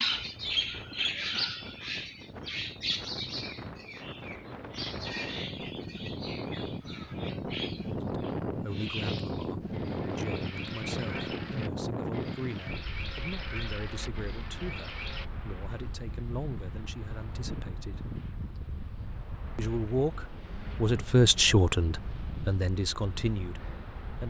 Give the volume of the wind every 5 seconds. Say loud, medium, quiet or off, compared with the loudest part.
medium, loud, loud, medium, medium.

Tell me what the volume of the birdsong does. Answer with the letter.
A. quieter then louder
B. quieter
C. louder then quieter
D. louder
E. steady
B.